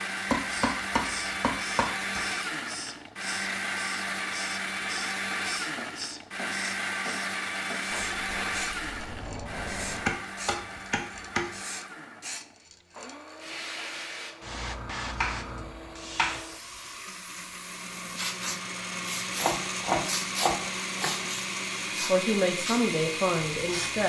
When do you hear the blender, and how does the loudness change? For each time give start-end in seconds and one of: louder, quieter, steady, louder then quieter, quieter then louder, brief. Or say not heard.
0.0-24.0 quieter then louder.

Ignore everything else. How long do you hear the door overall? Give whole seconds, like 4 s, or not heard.
2 s.